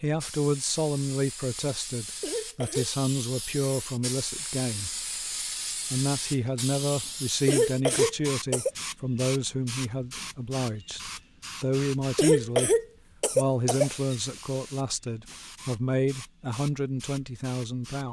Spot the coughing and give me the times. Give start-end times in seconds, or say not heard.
2.2-2.9, 7.5-8.7, 12.2-14.2.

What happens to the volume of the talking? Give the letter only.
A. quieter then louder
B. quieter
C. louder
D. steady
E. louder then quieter
D.